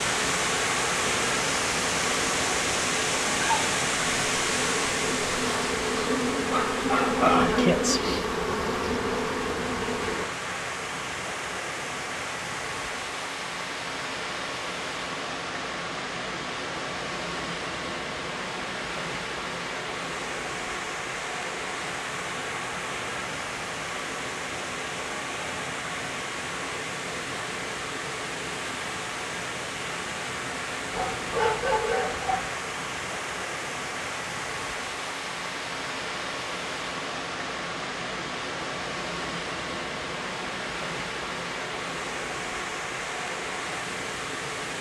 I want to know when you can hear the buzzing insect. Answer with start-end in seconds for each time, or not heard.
0.0-10.3.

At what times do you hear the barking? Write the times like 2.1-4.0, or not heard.
6.5-7.5, 30.9-32.5.